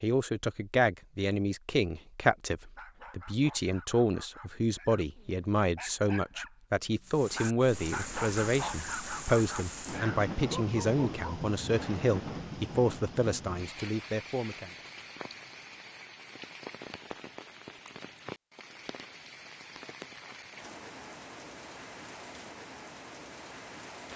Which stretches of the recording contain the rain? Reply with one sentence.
You can hear the rain from 7.1 to 24.1 s.